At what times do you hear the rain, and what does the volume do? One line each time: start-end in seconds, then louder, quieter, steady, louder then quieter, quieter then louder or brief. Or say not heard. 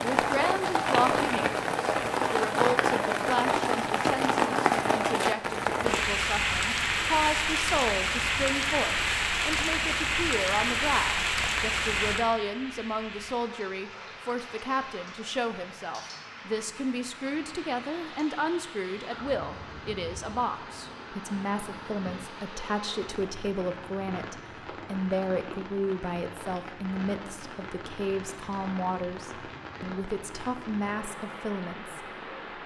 0.0-32.6 quieter.